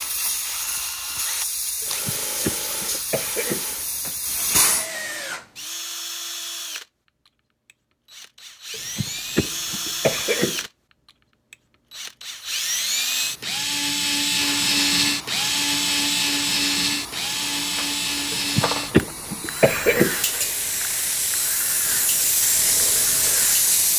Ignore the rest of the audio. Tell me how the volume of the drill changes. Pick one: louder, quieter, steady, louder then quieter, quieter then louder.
louder then quieter.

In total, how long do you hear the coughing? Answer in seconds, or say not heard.
6 s.